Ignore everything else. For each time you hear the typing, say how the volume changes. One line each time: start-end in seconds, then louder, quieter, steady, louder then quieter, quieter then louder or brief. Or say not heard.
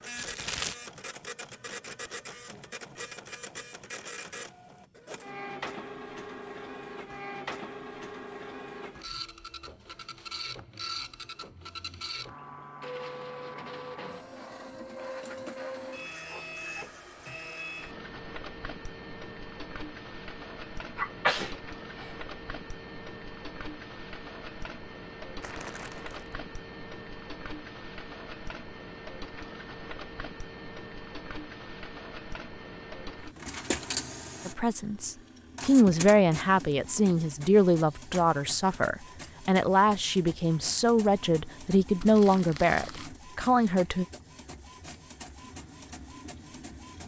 not heard.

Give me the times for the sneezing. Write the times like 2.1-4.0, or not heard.
20.9-22.1.